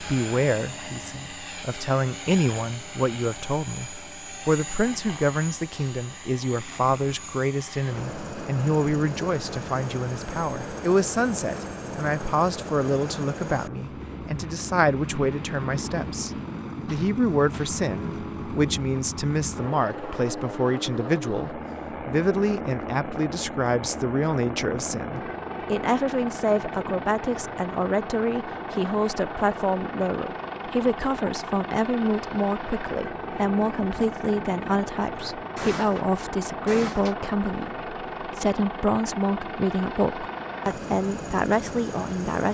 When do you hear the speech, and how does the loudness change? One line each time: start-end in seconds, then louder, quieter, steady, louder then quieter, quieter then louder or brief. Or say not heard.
0.0-16.3 steady
16.9-42.5 steady.